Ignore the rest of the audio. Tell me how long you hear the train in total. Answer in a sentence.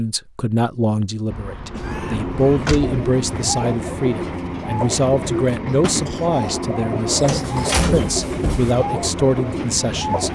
The train can be heard for 9 seconds in total.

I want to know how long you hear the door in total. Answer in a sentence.
The door can be heard for 3 seconds in total.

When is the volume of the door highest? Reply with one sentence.
The loudest moment of the door is at 8 seconds.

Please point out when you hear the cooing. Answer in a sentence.
You can hear the cooing from 2.8 to 10.3 s.